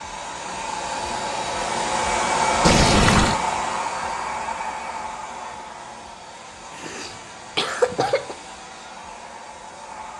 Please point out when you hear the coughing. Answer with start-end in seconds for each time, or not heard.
6.7-8.3.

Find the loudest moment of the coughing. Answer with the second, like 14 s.
8 s.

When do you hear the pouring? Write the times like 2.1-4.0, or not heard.
2.6-3.4.